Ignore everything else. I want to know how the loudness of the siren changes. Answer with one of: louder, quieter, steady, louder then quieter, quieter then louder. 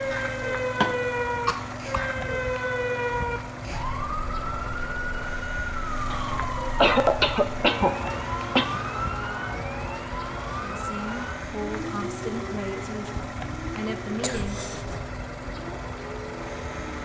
quieter.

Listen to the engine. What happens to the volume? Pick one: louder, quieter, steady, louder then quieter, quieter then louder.
steady.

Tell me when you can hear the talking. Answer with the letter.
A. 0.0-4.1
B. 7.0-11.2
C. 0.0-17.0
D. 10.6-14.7
D.